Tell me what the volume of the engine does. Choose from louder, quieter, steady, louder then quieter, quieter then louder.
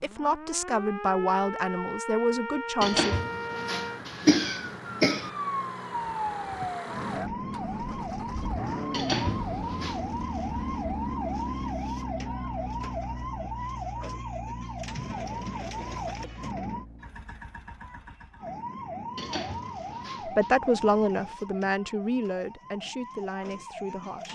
louder then quieter.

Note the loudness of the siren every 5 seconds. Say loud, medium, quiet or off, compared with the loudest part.
loud, loud, loud, loud, medium.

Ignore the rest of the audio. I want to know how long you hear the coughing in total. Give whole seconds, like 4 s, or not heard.
5 s.